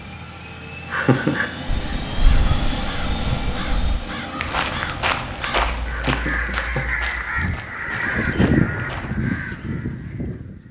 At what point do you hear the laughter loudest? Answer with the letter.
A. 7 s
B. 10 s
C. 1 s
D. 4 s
C.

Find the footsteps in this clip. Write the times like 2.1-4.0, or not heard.
1.6-9.2.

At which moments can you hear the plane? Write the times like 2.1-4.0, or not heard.
0.0-6.0.